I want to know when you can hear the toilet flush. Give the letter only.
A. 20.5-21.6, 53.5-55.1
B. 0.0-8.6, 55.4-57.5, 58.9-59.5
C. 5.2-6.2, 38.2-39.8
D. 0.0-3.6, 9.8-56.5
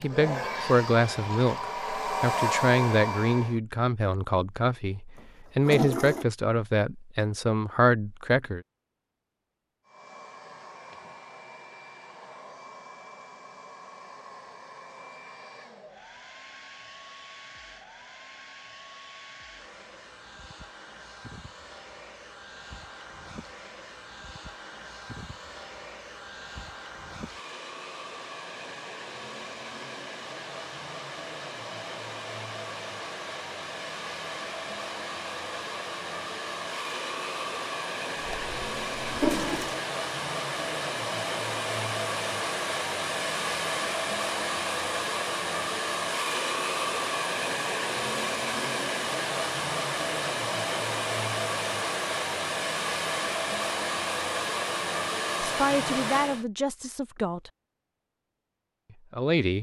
C.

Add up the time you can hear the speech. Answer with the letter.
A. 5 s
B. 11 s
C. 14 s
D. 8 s
B.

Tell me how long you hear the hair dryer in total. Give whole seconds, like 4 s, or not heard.
50 s.